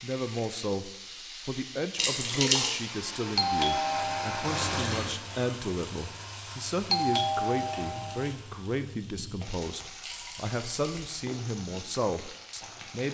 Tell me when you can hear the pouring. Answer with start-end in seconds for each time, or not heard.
1.9-2.8, 4.4-5.2, 9.1-11.1.